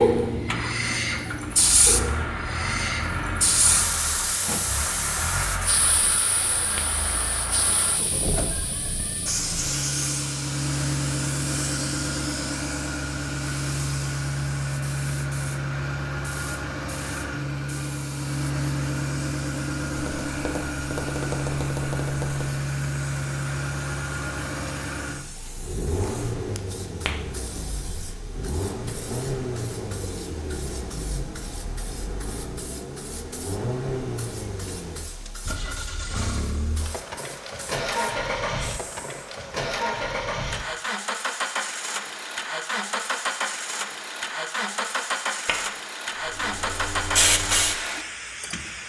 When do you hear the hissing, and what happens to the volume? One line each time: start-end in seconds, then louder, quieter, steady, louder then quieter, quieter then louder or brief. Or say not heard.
0.0-39.2 quieter
46.2-48.8 brief.